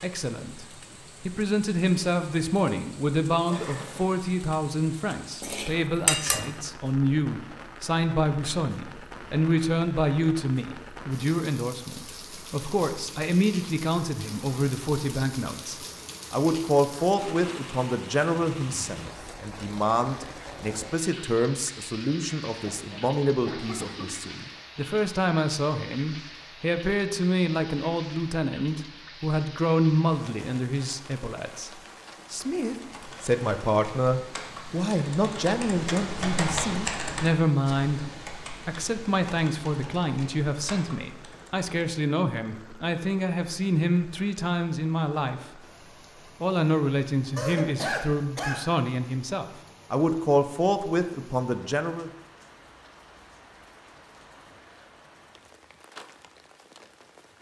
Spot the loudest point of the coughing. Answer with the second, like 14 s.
48 s.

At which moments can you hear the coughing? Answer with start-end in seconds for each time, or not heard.
3.3-4.1, 22.6-24.3, 47.4-48.6.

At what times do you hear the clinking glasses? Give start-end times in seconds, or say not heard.
5.4-6.5.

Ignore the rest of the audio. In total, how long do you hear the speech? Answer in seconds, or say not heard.
51 s.